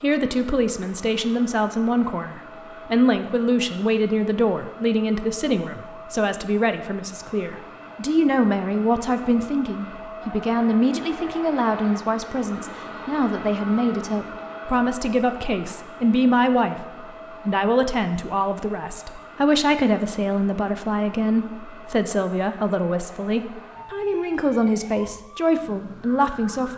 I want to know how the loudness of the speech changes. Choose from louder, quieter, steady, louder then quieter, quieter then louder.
steady.